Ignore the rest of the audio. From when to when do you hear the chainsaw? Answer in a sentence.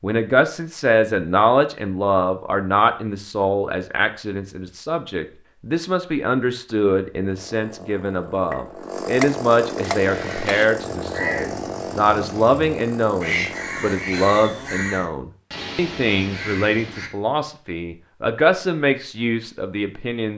You can hear the chainsaw from 7.2 to 14.9 s.